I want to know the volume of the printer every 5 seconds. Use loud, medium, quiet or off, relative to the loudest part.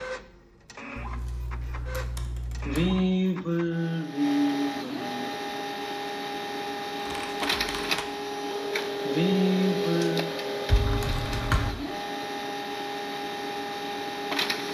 medium, loud, loud.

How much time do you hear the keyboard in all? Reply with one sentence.
You can hear the keyboard for 4 seconds altogether.